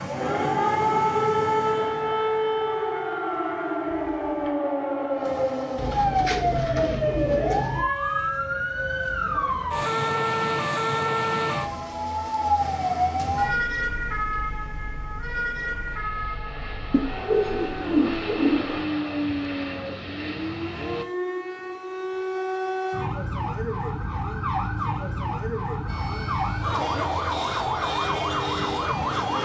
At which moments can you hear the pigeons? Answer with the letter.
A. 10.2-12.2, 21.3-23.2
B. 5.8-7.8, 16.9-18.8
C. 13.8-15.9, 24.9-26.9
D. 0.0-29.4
B.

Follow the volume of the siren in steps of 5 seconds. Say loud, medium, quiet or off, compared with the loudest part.
loud, loud, loud, medium, medium, loud.